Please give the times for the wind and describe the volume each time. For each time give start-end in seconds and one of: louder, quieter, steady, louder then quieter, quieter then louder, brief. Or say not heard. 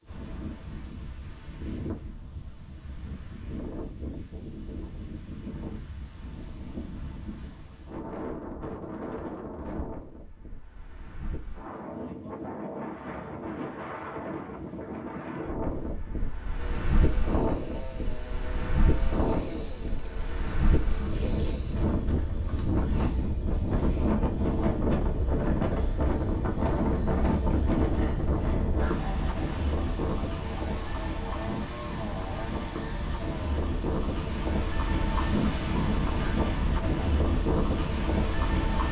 0.0-38.8 louder.